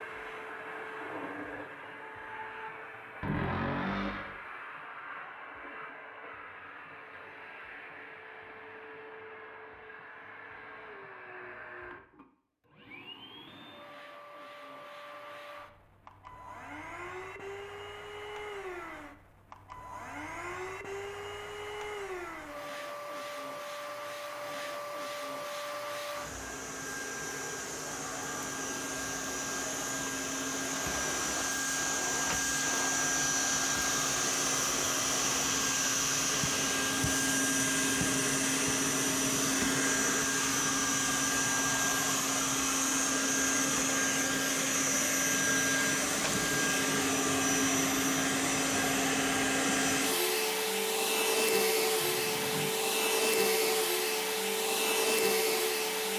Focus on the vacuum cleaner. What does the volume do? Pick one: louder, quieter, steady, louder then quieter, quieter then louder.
louder.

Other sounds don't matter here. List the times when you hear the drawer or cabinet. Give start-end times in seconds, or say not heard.
3.2-4.3, 52.0-52.7.